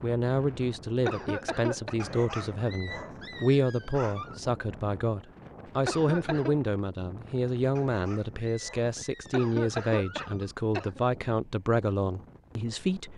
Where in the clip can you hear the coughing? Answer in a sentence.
You can hear the coughing from 1.1 to 1.9 s, from 5.8 to 6.5 s and from 9.3 to 11.0 s.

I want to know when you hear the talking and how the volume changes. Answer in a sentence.
The talking can be heard from 0.0 to 13.1 s, at a steady volume.